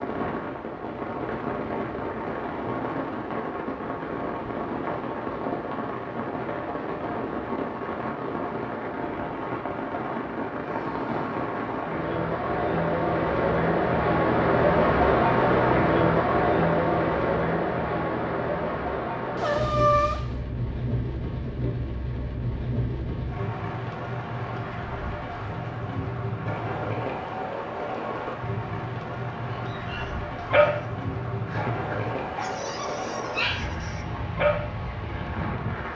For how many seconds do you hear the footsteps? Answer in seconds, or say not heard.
not heard.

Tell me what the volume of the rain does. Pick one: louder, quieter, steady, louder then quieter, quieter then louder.
louder then quieter.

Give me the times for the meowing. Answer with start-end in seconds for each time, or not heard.
19.4-20.2.